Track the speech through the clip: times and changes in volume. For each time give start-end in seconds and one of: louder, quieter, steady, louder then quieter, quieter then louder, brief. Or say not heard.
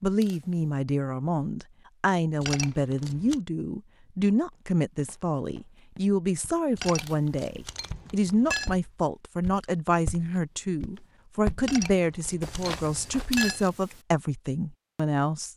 0.0-15.5 steady.